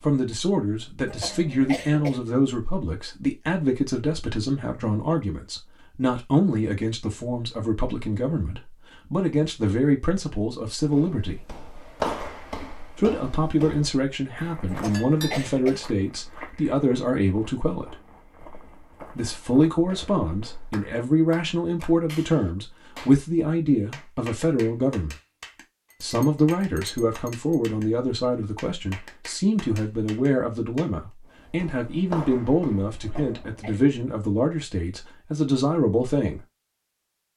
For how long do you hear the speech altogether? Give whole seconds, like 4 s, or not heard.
33 s.